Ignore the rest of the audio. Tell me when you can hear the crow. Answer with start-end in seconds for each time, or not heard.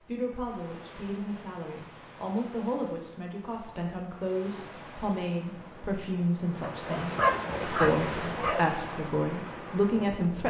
not heard.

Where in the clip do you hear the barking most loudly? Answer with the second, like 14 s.
7 s.